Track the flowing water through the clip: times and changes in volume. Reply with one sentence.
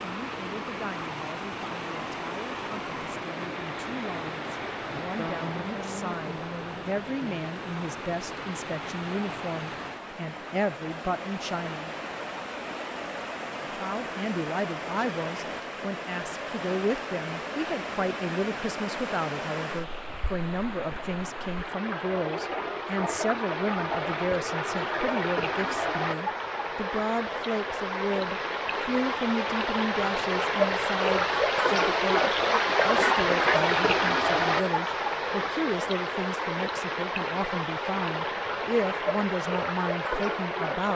The flowing water can be heard from 0.0 to 40.9 s, getting louder.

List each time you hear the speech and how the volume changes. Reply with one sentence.
You can hear the speech from 0.0 to 11.9 s, getting louder; and from 13.8 to 40.9 s, at a steady volume.